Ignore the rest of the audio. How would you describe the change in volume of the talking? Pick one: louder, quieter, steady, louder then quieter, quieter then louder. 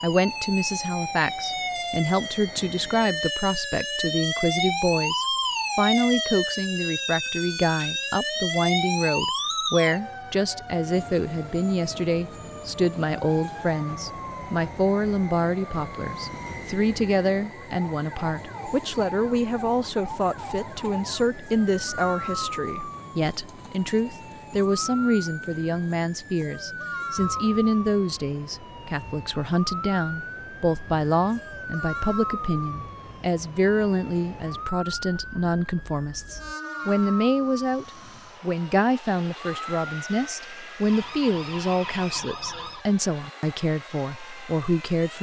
steady.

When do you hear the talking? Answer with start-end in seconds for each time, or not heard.
0.0-45.1.